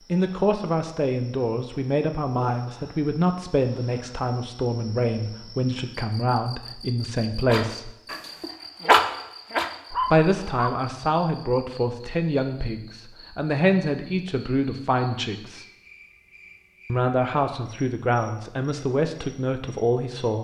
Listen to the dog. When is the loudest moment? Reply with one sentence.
The loudest moment of the dog is at 9 seconds.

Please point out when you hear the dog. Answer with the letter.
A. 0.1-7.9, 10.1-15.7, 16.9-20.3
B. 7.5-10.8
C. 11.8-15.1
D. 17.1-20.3
B.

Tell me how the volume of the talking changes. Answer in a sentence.
The volume of the talking stays about the same.